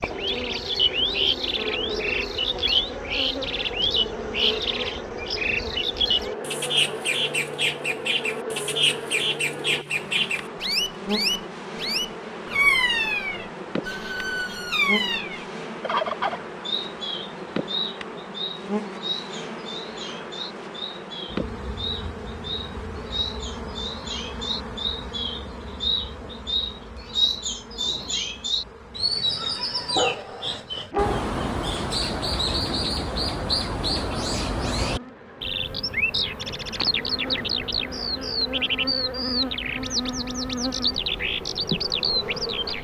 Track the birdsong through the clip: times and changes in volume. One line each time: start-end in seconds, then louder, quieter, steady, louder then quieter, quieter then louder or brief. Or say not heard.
0.0-42.7 quieter then louder.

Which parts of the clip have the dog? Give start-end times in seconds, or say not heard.
29.4-31.2.